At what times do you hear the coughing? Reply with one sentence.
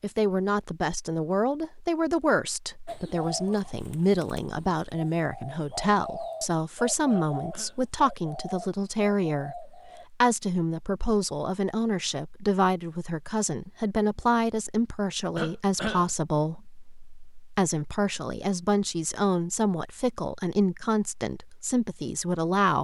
The coughing can be heard from 7.1 to 7.8 s and from 15.3 to 16.1 s.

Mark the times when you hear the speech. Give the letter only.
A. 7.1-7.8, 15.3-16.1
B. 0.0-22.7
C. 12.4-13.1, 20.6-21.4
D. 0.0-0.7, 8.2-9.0
B.